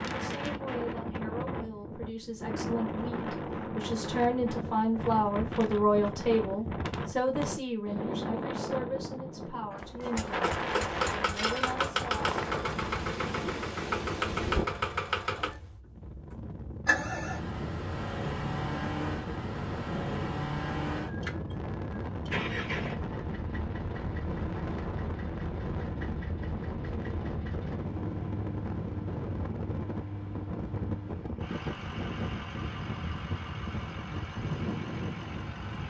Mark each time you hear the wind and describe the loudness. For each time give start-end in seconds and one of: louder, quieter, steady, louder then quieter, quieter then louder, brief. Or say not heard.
0.0-35.8 steady.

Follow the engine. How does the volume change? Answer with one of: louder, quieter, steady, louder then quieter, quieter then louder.
quieter.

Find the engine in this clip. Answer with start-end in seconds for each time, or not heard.
10.2-35.8.